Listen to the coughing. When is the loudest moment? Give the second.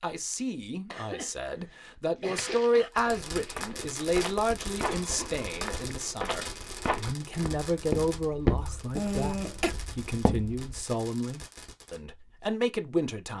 9 s.